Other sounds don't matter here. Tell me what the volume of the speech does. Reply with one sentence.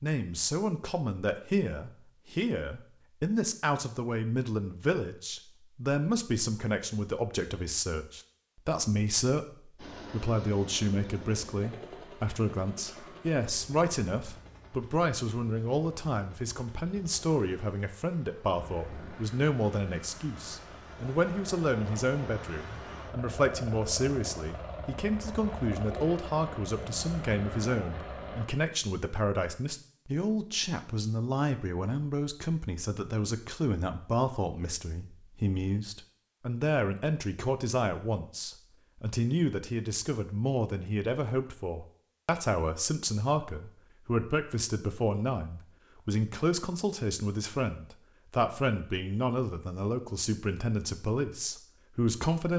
The loudness of the speech stays about the same.